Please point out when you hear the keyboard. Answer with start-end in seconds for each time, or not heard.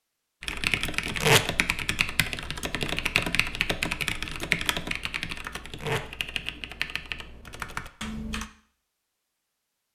0.4-8.5.